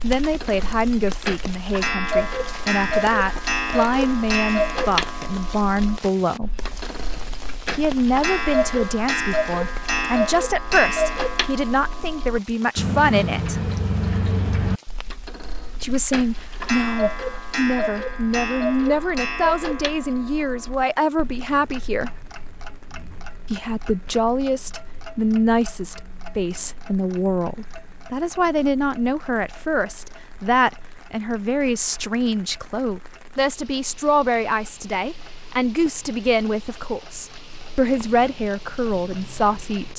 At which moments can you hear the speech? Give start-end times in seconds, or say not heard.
0.0-6.7, 7.7-13.6, 15.8-22.1, 23.5-39.9.